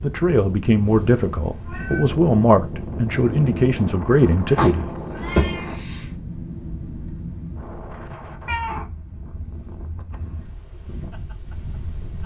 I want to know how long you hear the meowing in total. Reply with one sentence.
The meowing can be heard for 5 seconds in total.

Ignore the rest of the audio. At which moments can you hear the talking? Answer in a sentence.
You can hear the talking from 0.0 to 4.9 s.